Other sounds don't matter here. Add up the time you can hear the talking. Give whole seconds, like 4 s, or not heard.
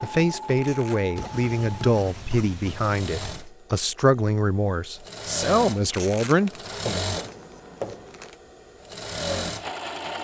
7 s.